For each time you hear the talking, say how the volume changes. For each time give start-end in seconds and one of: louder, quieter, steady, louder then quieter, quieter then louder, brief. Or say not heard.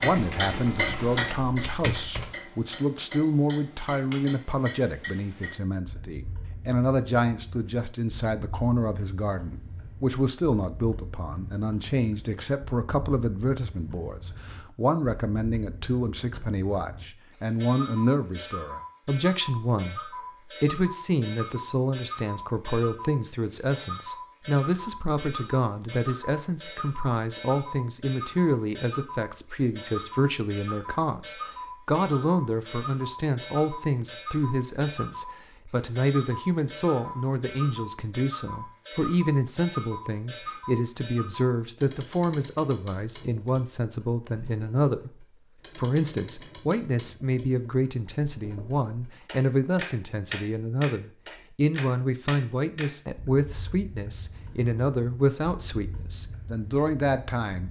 0.0-57.6 steady.